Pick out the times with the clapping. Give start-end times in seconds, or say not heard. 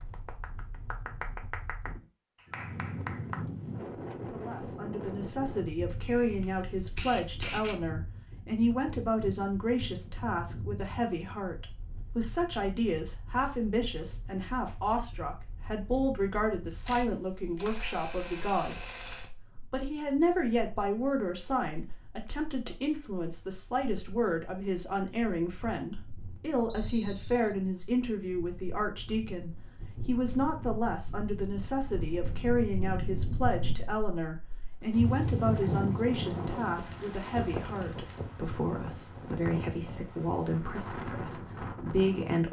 0.0-3.5.